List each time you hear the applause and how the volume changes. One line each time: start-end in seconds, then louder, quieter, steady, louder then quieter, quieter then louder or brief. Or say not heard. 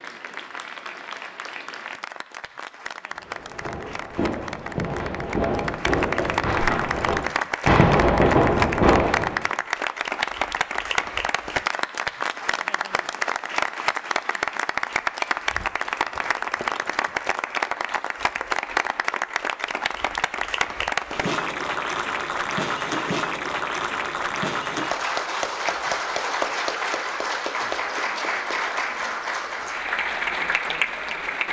0.0-31.4 louder.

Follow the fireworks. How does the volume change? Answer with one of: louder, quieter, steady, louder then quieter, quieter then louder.
louder.